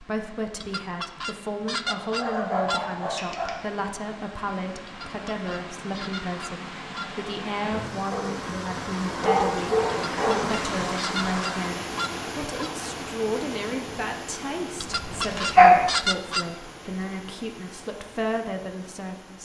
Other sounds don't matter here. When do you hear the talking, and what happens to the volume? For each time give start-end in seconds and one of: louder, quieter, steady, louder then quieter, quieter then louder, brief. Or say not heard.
0.0-19.4 steady.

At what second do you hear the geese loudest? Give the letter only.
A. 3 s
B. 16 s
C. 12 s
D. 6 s
B.